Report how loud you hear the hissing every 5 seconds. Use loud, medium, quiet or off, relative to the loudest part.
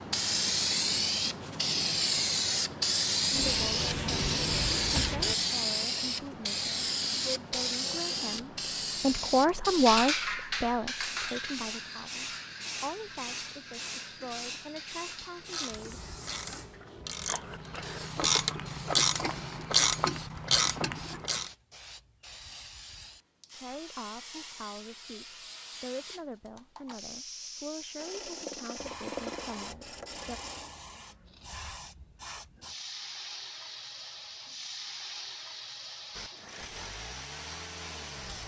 loud, loud, medium, quiet, quiet, quiet, quiet, quiet.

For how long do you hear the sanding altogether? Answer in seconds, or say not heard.
5 s.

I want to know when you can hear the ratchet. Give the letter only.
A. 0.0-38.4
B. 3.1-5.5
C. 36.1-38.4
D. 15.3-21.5
D.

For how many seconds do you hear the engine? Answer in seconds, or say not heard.
2 s.